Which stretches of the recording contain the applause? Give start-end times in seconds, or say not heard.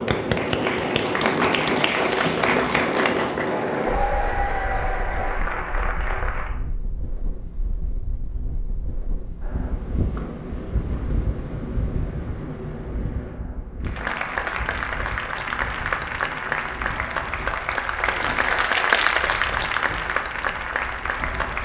0.0-6.5, 13.8-21.6.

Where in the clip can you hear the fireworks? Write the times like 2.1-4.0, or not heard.
not heard.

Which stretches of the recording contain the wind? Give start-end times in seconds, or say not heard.
0.0-21.6.